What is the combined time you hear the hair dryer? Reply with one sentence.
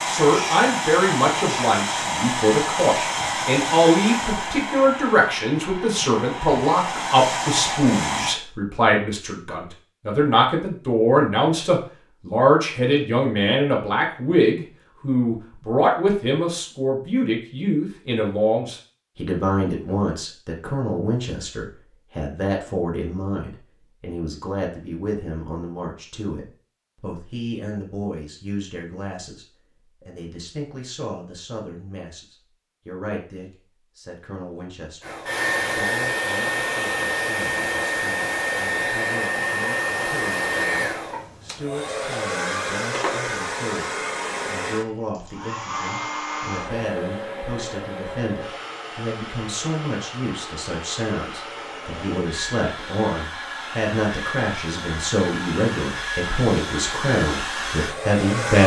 You can hear the hair dryer for 32 seconds altogether.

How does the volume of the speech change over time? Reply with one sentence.
The volume of the speech goes down, then up.